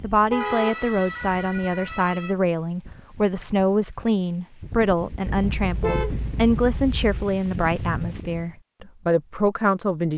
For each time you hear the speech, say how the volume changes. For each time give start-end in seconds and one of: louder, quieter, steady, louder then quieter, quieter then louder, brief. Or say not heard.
0.0-10.1 steady.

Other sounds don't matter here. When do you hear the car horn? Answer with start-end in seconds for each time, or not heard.
0.3-0.8, 5.2-7.2.